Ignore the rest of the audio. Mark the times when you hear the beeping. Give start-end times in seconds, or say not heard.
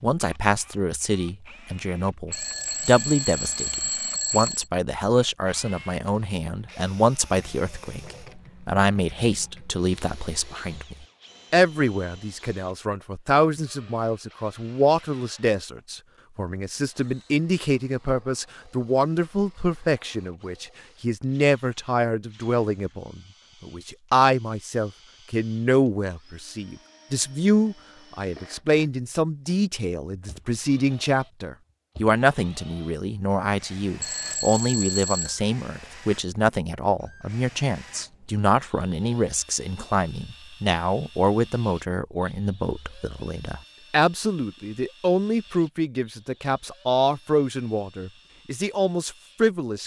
2.3-4.7, 34.0-35.4.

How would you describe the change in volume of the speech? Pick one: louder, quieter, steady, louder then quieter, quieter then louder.
steady.